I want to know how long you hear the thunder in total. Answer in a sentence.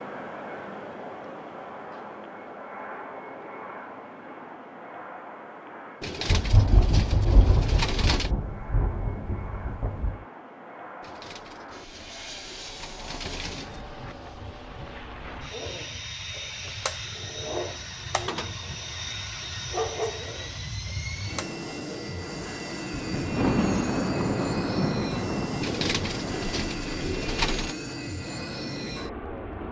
The thunder can be heard for 8 seconds in total.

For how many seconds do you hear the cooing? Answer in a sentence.
The cooing can be heard for 7 seconds in total.